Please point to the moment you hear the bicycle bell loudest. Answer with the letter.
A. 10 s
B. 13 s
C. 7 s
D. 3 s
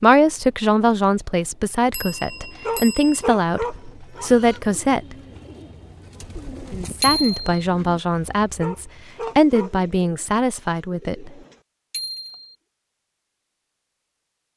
C.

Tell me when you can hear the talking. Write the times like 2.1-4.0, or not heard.
0.0-5.2, 6.7-11.3.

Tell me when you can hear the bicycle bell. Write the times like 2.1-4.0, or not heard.
1.9-3.2, 7.0-7.5, 11.9-12.5.